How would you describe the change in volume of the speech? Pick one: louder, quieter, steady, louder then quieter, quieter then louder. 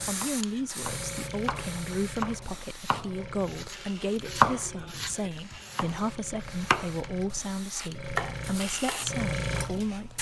steady.